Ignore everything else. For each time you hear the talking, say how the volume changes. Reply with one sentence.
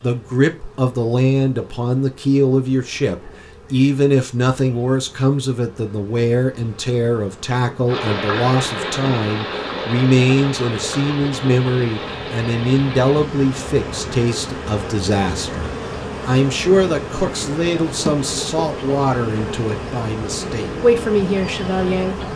The talking can be heard from 0.0 to 22.2 s, at a steady volume.